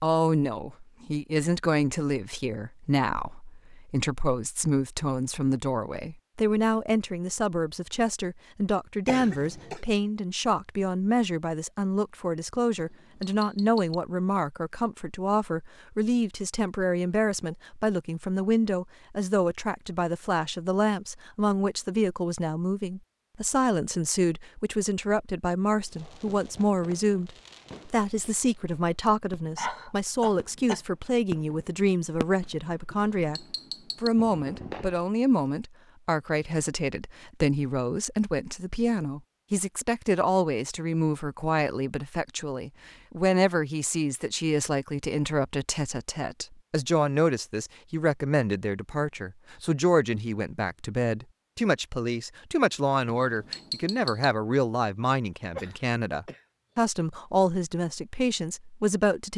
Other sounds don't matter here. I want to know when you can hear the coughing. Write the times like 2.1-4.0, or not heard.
9.1-9.8, 29.1-30.8, 55.5-56.5.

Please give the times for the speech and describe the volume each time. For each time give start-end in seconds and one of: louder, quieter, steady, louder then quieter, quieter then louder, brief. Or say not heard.
0.0-33.4 steady
34.0-59.3 steady.